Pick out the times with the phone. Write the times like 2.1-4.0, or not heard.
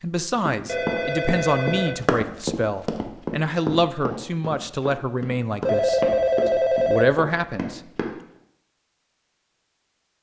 0.7-2.0, 5.7-7.2.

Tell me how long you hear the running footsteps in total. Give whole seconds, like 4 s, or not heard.
8 s.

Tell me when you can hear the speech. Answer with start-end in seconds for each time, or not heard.
0.0-6.0, 6.8-7.8.